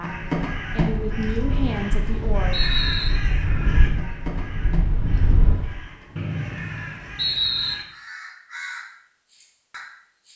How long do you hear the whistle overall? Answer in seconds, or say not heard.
3 s.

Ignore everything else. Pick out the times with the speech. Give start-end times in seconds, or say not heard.
0.0-2.5.